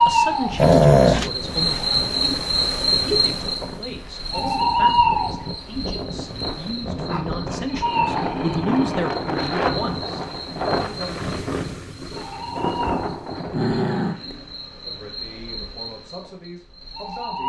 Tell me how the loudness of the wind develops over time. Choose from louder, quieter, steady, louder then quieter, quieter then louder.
louder.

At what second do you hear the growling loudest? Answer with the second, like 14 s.
1 s.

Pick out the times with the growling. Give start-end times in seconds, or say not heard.
0.6-1.3, 7.0-9.1, 13.3-14.5.